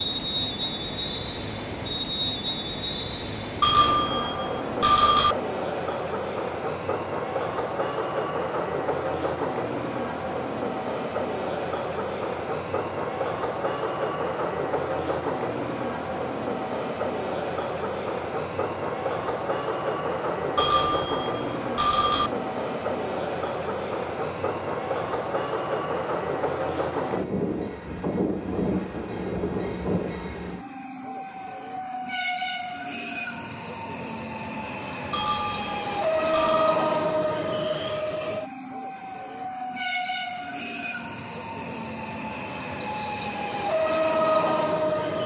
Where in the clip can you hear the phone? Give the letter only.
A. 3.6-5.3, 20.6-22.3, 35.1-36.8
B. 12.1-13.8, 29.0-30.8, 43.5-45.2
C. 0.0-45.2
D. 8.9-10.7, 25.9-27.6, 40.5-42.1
A.